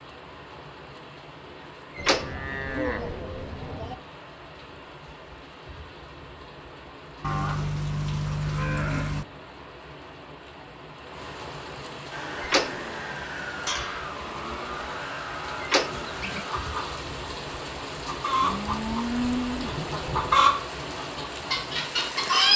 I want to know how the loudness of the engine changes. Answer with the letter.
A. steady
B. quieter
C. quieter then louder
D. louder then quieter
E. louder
A.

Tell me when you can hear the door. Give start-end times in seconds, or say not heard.
1.9-2.5, 12.4-12.8, 15.6-16.2.